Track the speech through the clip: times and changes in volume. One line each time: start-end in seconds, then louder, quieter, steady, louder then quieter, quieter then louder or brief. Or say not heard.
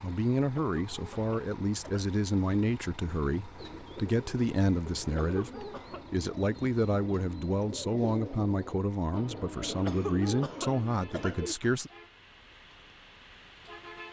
0.0-11.9 steady.